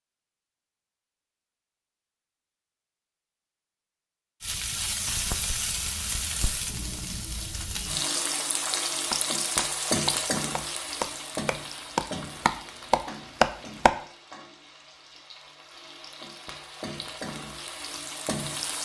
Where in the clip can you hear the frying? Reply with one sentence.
The frying can be heard from 4.4 to 18.8 s.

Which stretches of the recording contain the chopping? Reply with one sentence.
The chopping can be heard from 9.1 to 13.9 s.